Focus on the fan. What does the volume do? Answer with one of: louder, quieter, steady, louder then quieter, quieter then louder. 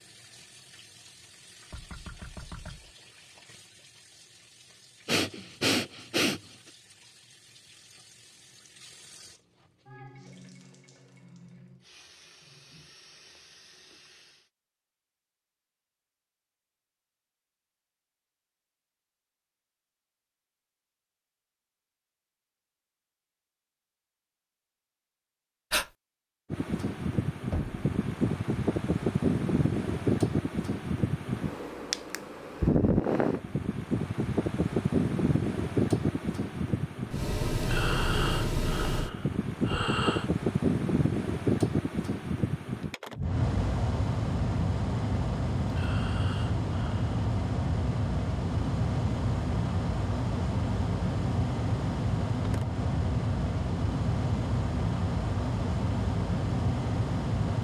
steady.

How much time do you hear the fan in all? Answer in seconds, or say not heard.
31 s.